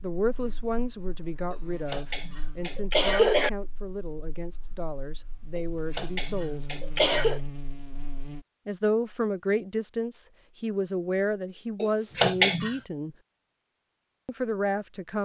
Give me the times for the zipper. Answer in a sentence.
You can't hear the zipper here.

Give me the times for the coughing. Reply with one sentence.
The coughing can be heard from 1.5 to 3.5 s, from 5.5 to 7.4 s and from 11.8 to 12.8 s.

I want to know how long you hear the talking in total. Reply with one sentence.
You can hear the talking for 12 seconds altogether.